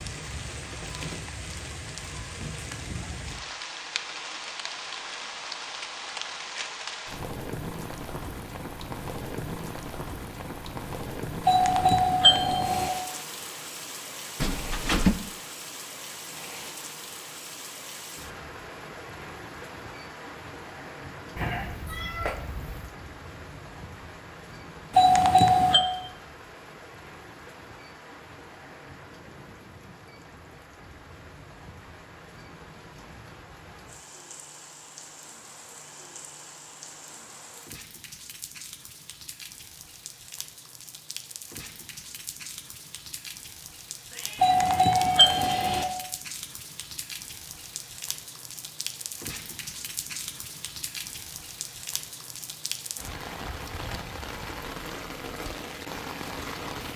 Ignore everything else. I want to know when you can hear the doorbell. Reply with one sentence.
The doorbell can be heard from 11.4 to 12.9 s, from 24.9 to 25.8 s and from 44.4 to 45.9 s.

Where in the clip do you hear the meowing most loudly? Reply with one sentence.
The loudest moment of the meowing is at 15 seconds.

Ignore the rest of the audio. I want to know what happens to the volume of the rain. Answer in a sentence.
The volume of the rain goes down, then up.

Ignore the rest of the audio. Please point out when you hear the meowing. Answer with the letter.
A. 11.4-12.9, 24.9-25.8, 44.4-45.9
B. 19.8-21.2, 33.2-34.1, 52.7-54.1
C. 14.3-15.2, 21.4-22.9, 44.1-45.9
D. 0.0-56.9
C.